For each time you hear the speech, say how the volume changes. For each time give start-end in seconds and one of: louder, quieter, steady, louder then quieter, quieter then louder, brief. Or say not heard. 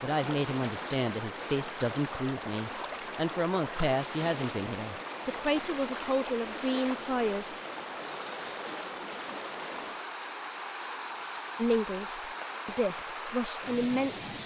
0.0-7.5 steady
11.6-14.4 brief.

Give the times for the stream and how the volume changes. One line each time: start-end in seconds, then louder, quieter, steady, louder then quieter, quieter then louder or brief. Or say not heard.
0.0-14.4 steady.